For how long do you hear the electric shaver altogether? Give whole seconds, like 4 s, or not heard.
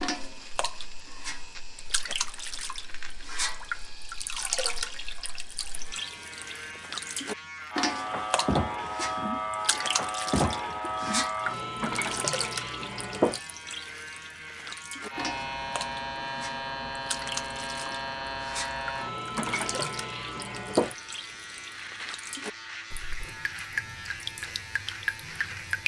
26 s.